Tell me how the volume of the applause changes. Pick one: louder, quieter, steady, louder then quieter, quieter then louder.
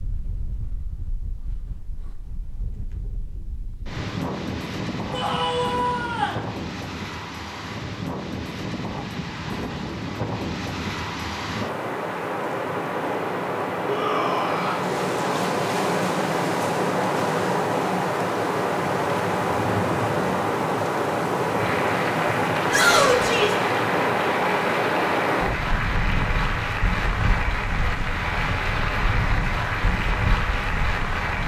steady.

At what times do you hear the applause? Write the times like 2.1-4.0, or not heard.
21.6-31.4.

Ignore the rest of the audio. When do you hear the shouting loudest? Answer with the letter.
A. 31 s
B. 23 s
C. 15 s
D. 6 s
B.